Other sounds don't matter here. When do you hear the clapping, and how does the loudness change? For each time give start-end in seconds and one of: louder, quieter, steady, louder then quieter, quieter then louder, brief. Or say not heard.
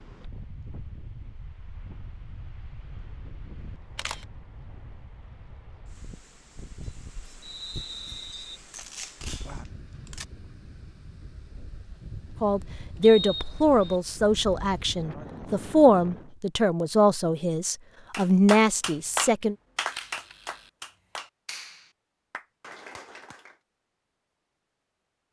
18.1-23.6 quieter.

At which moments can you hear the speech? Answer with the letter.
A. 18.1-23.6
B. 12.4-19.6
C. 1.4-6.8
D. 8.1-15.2
B.